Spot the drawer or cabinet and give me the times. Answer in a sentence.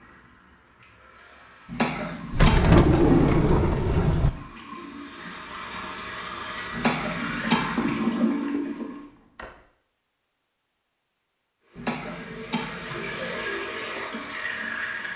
You can hear the drawer or cabinet from 2.3 to 4.3 s and from 8.8 to 9.6 s.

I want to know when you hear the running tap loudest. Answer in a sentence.
The loudest moment of the running tap is at 8 seconds.